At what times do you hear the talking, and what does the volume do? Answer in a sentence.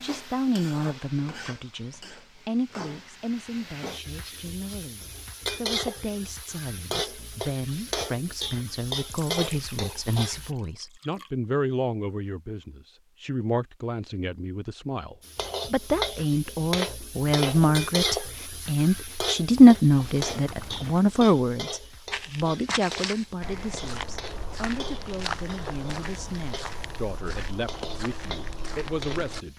The talking can be heard from 0.0 to 29.5 s, getting louder then quieter.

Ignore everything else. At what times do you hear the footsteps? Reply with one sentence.
The footsteps can be heard from 22.1 to 29.4 s.